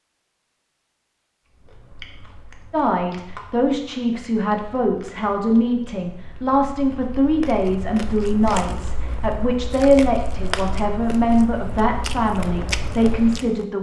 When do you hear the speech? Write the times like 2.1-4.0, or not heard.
2.7-13.7.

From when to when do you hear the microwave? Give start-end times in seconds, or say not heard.
not heard.